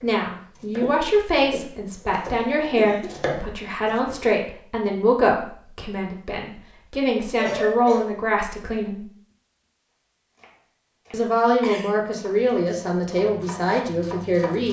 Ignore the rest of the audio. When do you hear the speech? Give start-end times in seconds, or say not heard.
0.0-9.1, 11.1-14.6.